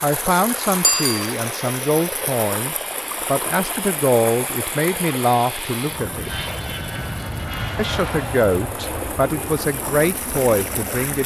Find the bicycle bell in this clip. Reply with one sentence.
The bicycle bell can be heard from 0.8 to 1.4 s.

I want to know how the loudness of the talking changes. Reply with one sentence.
The loudness of the talking stays about the same.